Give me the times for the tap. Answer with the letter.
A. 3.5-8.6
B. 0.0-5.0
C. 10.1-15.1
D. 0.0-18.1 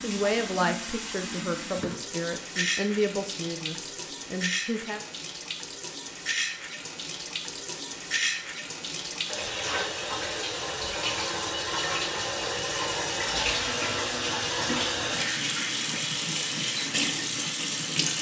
D.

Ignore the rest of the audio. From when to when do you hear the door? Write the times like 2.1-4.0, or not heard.
not heard.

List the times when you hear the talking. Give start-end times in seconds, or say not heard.
0.0-5.0.